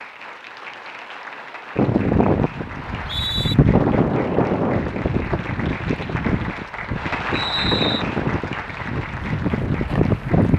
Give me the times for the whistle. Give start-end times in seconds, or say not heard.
2.8-3.5, 7.3-8.1.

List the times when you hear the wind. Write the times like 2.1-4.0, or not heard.
1.8-10.5.